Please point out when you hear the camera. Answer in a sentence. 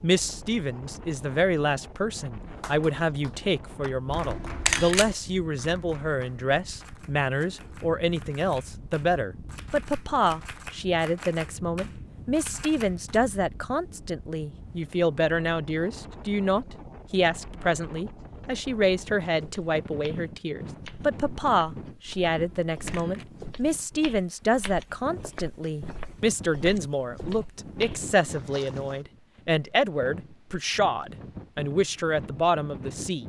You can hear the camera from 4.2 to 5.2 s and from 22.3 to 23.2 s.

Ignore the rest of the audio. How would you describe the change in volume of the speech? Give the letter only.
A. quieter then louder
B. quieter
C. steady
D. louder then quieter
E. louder
C.